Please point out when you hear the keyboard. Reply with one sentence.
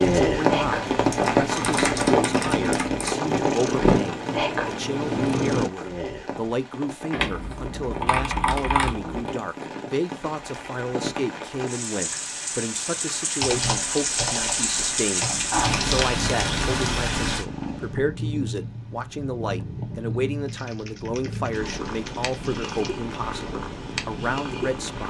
The keyboard can be heard from 1.1 to 3.1 s, from 7.1 to 9.3 s, from 13.4 to 16.0 s and from 20.4 to 22.9 s.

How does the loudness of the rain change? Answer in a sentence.
The volume of the rain goes down, then up.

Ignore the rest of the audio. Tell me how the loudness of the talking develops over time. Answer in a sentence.
The volume of the talking stays about the same.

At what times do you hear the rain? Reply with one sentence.
You can hear the rain from 0.0 to 17.4 s.